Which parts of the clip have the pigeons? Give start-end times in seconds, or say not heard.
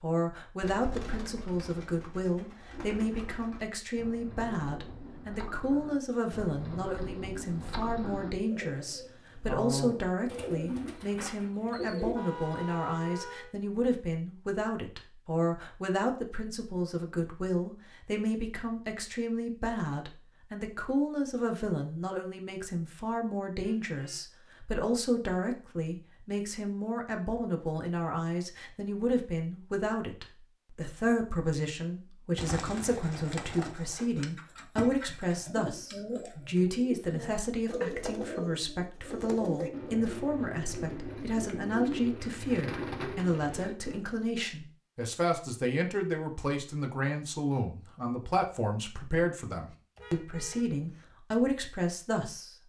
0.6-12.2, 32.4-44.0.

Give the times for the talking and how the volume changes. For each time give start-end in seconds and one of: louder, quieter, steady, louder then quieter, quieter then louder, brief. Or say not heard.
0.0-52.5 steady.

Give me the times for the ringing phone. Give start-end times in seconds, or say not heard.
not heard.